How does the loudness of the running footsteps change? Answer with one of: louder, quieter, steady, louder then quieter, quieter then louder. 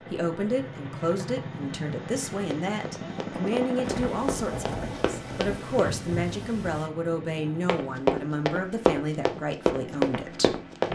louder.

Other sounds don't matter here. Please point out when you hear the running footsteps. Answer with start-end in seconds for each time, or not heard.
2.4-5.9, 7.7-10.9.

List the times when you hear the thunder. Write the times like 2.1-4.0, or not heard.
3.8-6.9.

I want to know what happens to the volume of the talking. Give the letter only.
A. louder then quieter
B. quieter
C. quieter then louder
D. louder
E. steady
E.